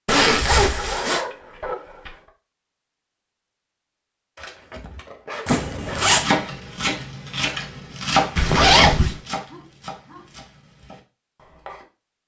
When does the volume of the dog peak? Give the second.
1 s.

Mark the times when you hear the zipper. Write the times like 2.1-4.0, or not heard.
0.1-1.2, 5.5-6.2, 8.3-9.2.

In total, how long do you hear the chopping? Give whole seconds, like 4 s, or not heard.
6 s.